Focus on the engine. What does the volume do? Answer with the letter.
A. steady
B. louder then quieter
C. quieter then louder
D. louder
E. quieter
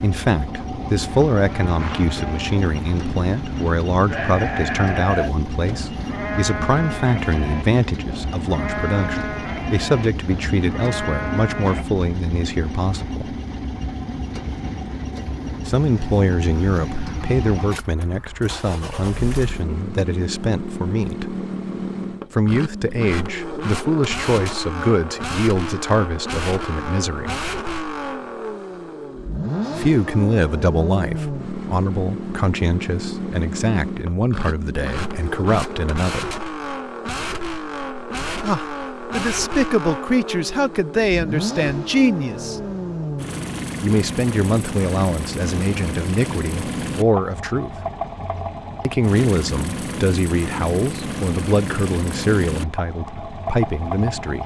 A.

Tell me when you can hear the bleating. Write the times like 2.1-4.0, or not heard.
1.3-11.8.